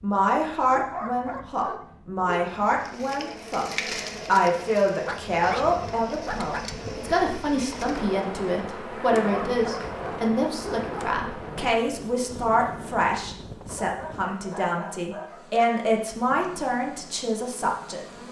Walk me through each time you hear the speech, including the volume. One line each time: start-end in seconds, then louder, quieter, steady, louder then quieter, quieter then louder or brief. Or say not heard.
0.0-18.1 steady.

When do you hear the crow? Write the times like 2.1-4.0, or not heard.
not heard.